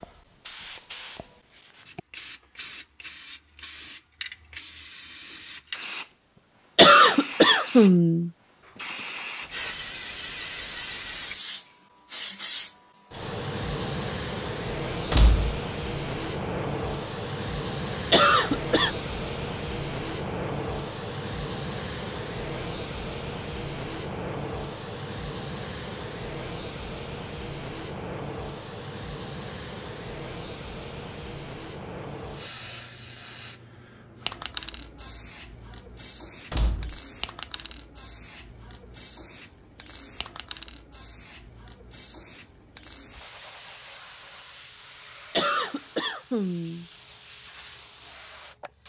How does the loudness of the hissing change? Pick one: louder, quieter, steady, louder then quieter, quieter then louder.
quieter.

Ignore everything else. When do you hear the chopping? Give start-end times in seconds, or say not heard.
not heard.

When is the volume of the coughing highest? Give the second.
7 s.